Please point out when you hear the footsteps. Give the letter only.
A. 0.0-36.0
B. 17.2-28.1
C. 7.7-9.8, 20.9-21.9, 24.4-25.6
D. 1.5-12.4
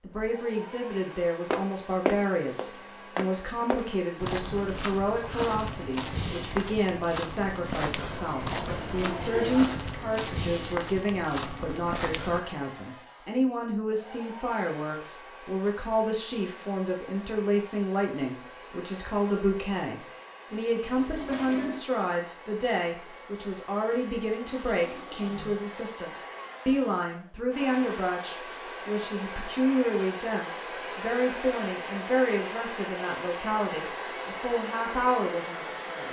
D.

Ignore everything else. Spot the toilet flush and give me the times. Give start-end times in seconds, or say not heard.
7.7-9.8, 20.9-21.9, 24.4-25.6.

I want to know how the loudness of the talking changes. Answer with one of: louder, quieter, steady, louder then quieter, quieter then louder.
steady.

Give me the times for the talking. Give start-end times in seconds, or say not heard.
0.0-36.0.